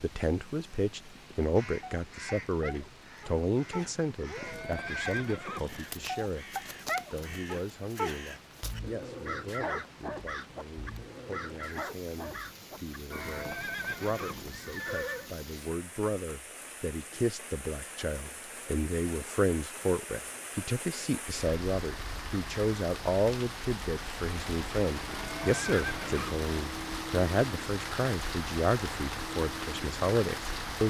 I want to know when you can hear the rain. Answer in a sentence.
The rain can be heard from 0.0 to 30.8 s.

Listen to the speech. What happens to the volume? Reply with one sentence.
The loudness of the speech goes down, then up.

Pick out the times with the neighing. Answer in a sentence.
You can hear the neighing from 4.3 to 6.0 s, from 13.1 to 15.3 s and from 25.1 to 26.4 s.